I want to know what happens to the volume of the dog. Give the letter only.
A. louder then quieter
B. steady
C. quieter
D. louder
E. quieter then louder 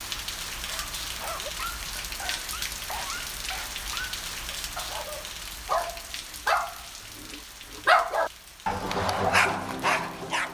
D.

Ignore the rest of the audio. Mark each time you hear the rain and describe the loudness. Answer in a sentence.
You can hear the rain from 0.0 to 10.4 s, getting quieter.